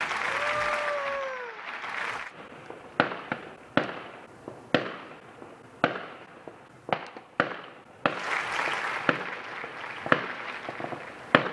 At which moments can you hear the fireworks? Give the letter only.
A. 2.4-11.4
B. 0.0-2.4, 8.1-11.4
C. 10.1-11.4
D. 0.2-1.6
A.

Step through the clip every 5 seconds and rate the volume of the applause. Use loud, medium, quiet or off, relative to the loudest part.
loud, loud, medium.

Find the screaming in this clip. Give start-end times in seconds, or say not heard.
0.2-1.6.